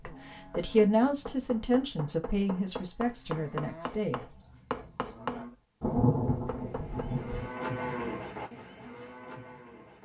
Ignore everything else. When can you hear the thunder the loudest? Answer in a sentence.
The volume of the thunder peaks at 6 seconds.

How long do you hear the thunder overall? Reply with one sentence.
You can hear the thunder for 2 seconds altogether.